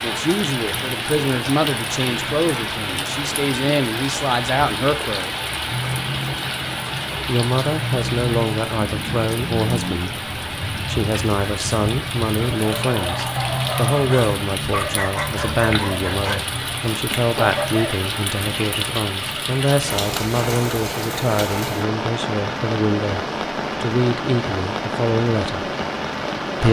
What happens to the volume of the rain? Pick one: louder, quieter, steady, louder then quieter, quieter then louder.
steady.